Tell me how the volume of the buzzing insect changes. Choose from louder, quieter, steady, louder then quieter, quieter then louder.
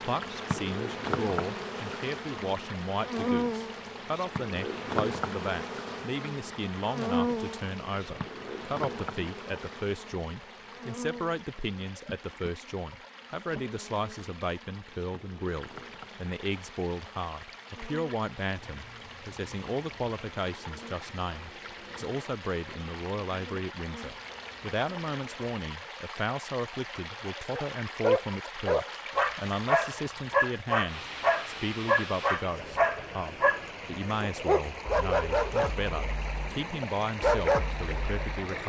quieter.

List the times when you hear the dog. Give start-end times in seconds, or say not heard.
27.5-38.5.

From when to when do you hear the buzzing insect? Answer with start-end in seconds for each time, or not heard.
0.0-25.6.